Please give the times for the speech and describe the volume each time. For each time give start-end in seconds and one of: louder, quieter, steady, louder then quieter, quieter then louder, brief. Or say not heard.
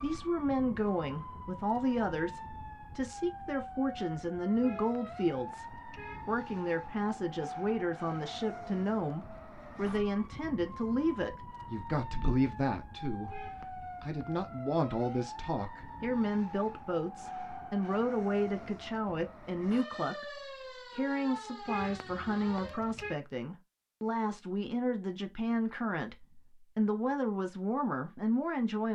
0.0-28.9 steady.